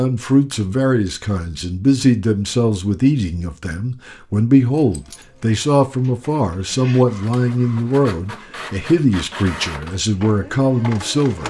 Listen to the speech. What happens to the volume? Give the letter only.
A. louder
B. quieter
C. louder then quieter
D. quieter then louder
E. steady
E.